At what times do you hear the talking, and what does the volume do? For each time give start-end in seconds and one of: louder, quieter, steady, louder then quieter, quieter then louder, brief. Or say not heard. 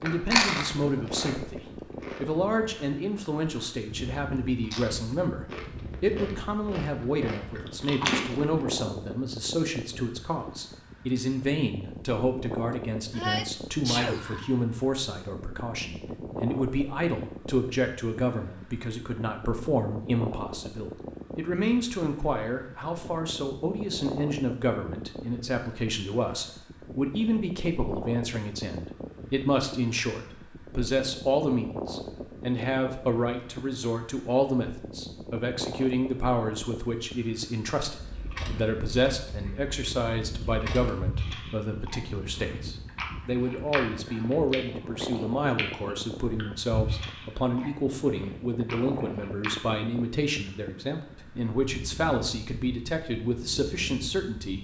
0.0-54.5 steady.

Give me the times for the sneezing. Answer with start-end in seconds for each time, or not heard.
13.1-14.6.